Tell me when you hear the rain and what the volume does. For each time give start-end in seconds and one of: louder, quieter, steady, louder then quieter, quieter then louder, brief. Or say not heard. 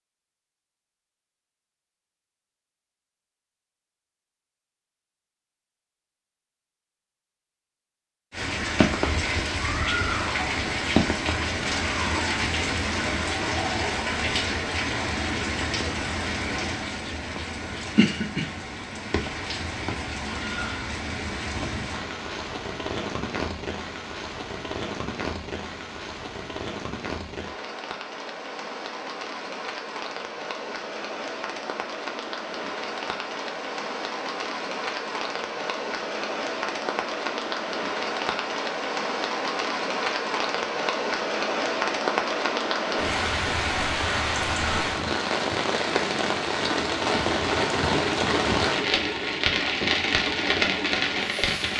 8.3-51.7 quieter then louder.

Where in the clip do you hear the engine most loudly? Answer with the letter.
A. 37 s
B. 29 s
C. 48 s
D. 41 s
C.